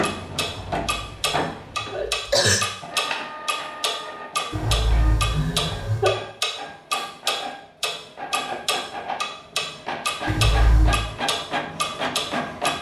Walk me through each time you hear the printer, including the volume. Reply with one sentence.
The printer can be heard from 0.0 to 12.7 s, getting quieter then louder.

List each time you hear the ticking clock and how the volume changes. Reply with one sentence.
The ticking clock can be heard from 0.0 to 12.7 s, at a steady volume.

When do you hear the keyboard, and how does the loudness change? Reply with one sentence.
You can't hear the keyboard here.